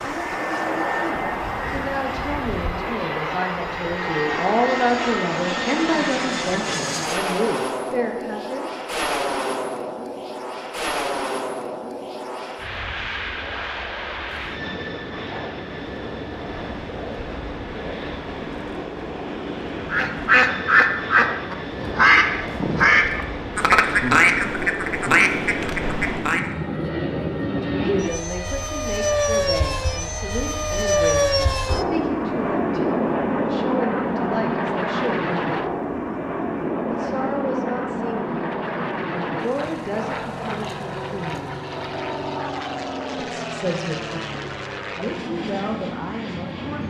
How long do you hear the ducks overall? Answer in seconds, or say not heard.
7 s.